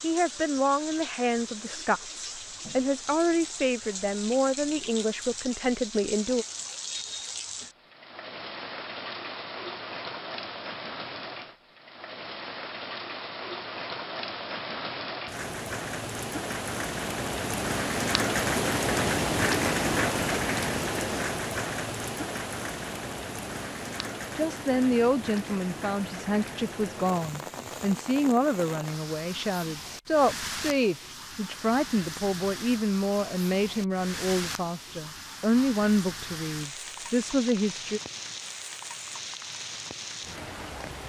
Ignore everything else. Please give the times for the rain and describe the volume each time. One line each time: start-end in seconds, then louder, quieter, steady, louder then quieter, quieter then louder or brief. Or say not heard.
0.0-41.0 louder then quieter.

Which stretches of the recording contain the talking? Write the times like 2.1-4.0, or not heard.
0.0-6.5, 24.4-38.0.